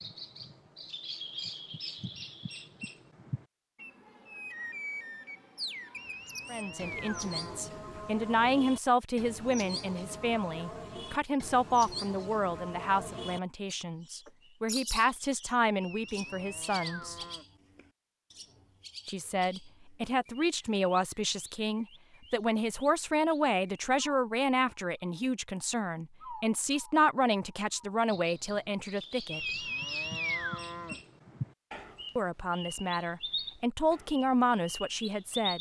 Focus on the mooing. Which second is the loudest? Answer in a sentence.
The loudest moment of the mooing is at 30 seconds.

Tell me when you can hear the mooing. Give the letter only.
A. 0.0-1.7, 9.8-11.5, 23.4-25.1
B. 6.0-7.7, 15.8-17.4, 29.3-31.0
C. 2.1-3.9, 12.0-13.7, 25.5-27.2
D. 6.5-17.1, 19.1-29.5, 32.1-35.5
B.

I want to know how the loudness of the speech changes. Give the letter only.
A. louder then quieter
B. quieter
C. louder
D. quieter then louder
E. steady
E.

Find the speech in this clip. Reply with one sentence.
The speech can be heard from 6.5 to 17.1 s, from 19.1 to 29.5 s and from 32.1 to 35.5 s.